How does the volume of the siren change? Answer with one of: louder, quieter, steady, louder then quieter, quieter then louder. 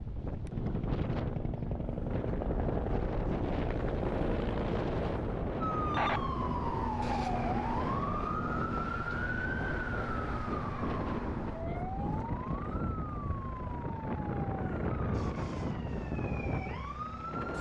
quieter.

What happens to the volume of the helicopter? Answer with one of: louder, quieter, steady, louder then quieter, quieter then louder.
quieter.